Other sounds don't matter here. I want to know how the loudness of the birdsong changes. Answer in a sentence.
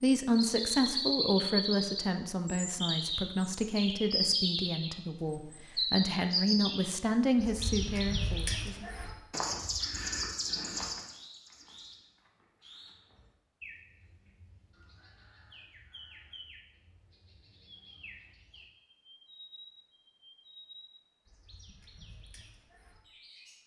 The loudness of the birdsong goes down.